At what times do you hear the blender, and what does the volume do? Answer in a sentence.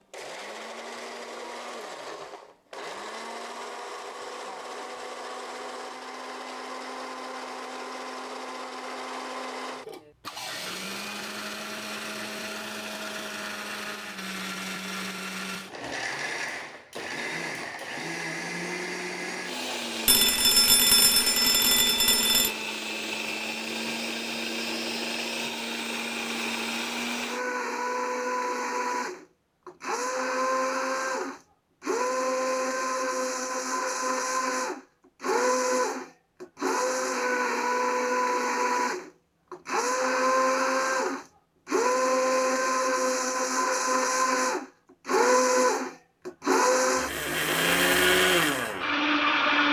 The blender can be heard from 0.0 to 49.6 s, getting louder.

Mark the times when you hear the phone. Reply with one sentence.
The phone can be heard from 20.1 to 22.5 s.